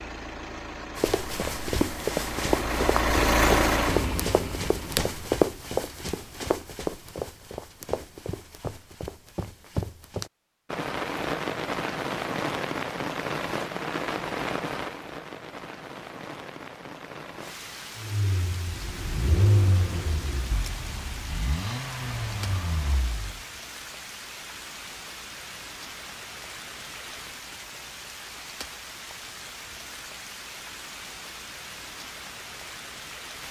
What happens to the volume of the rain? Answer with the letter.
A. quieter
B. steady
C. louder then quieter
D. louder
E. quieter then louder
A.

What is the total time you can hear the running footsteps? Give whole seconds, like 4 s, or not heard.
9 s.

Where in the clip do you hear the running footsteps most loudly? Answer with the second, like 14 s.
5 s.